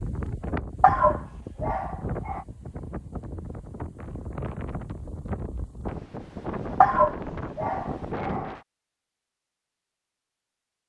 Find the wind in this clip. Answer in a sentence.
You can hear the wind from 0.0 to 8.6 s.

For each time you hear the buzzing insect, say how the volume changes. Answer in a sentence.
The buzzing insect can't be heard in this clip.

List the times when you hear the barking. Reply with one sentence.
You can hear the barking from 0.8 to 2.5 s and from 6.8 to 8.6 s.